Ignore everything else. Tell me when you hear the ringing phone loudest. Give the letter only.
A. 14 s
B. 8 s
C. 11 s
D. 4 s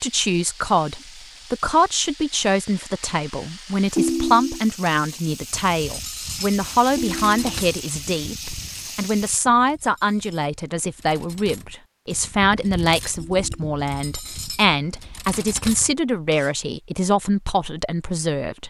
D.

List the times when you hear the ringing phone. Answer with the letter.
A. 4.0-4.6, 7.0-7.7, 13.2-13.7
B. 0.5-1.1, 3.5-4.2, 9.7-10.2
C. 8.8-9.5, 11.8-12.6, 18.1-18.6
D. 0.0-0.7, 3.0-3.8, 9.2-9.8
A.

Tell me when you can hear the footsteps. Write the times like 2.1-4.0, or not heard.
not heard.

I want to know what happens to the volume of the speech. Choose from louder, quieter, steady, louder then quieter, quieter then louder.
steady.